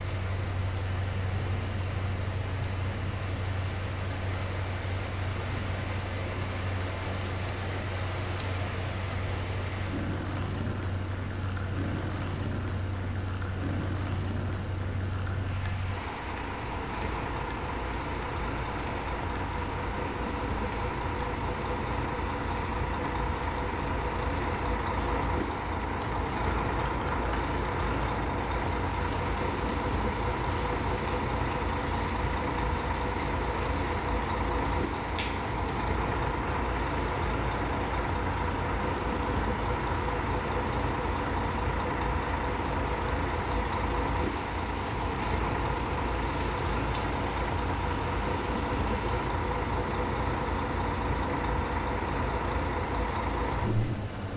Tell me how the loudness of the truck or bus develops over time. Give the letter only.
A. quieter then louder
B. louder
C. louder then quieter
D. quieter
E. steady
B.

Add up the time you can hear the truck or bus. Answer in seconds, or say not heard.
54 s.